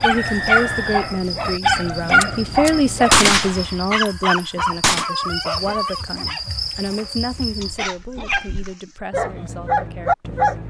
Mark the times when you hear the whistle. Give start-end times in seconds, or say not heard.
0.1-1.1.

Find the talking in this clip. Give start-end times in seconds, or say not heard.
0.0-10.6.